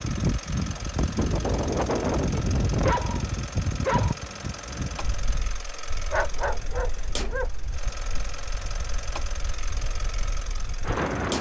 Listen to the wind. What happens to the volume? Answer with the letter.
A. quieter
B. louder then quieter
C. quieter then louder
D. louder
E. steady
A.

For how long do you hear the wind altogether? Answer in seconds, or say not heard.
11 s.